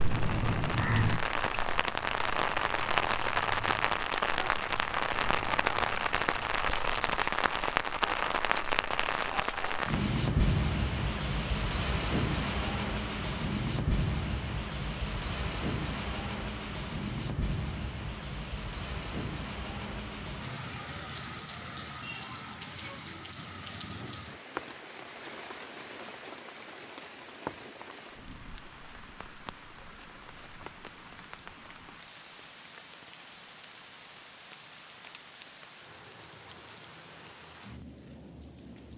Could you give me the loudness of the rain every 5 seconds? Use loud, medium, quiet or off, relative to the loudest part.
loud, loud, loud, medium, medium, quiet, quiet, quiet.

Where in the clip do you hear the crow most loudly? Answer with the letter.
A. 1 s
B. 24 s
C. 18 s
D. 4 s
A.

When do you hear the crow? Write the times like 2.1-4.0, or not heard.
0.0-7.2.